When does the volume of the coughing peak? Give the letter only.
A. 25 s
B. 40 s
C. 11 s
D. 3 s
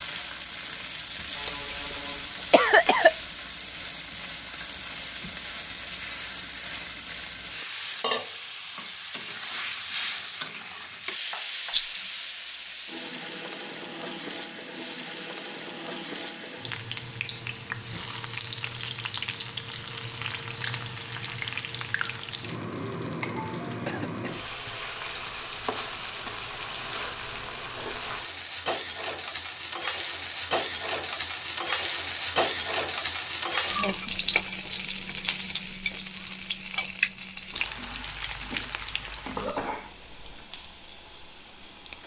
D.